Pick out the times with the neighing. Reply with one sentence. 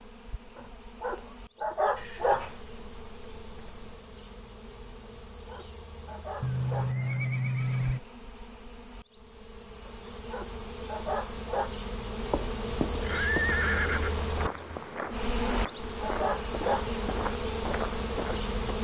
The neighing can be heard from 1.9 to 4.0 s, from 6.4 to 8.0 s and from 13.0 to 14.3 s.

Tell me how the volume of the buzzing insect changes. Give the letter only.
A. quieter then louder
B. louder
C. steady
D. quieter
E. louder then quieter
B.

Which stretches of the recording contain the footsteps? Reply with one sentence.
The footsteps can be heard from 12.1 to 18.6 s.